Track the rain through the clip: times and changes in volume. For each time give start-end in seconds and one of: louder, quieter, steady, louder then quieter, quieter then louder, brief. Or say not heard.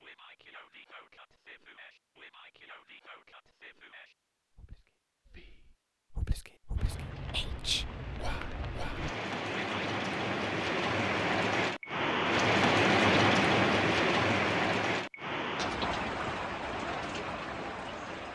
6.8-18.3 louder then quieter.